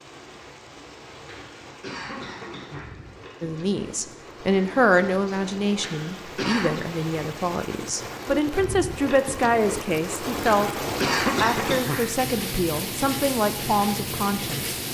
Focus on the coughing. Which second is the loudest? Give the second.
11 s.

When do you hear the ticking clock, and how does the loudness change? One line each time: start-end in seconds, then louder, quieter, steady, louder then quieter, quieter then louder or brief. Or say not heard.
not heard.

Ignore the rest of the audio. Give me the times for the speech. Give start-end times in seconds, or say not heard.
3.4-10.8, 11.4-14.8.